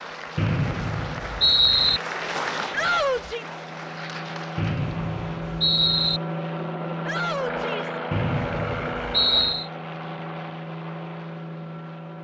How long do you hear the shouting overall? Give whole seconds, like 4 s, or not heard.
2 s.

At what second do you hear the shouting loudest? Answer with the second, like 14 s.
3 s.